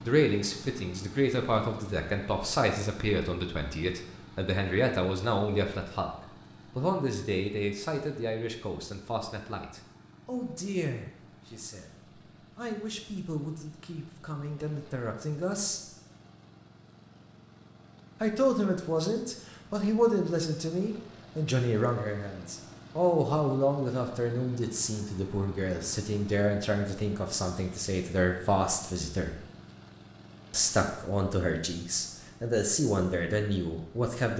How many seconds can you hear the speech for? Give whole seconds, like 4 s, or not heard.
30 s.